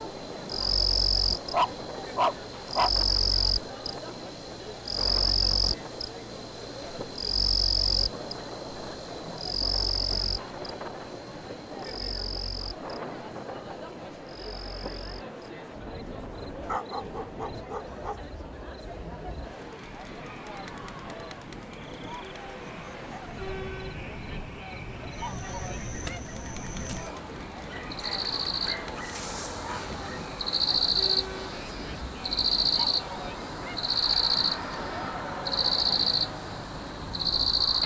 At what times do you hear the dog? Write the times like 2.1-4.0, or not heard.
1.5-2.9, 16.6-18.2, 27.6-30.0.